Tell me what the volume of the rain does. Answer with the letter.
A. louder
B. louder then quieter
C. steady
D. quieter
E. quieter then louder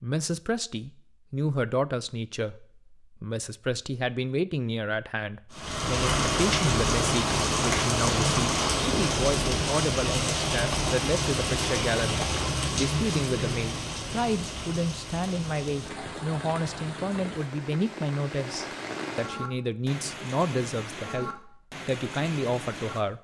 D.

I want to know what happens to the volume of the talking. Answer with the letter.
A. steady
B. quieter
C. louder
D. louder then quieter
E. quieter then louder
A.